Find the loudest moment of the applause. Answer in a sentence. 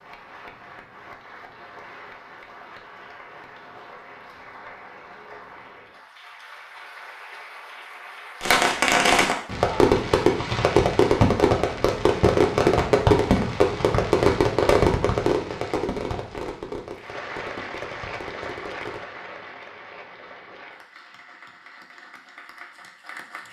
The loudest moment of the applause is at 18 seconds.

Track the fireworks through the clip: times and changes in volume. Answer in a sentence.
The fireworks can be heard from 8.4 to 19.1 s, getting quieter.